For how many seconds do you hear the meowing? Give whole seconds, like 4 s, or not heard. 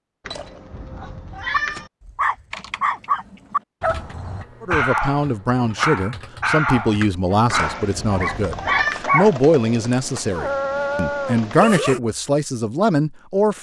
3 s.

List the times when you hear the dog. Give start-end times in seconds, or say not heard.
1.5-12.0.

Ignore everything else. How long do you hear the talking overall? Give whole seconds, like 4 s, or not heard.
9 s.